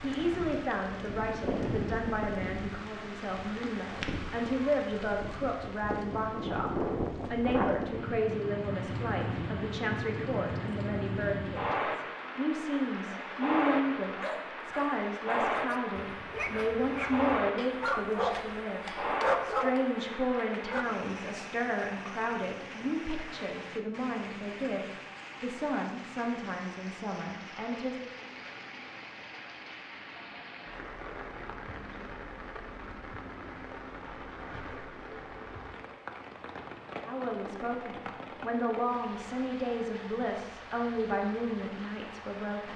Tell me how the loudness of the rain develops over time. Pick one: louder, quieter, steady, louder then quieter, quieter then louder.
quieter.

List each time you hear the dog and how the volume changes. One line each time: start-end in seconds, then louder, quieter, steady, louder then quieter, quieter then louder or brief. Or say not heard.
14.2-20.9 louder.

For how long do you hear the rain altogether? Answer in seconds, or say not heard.
43 s.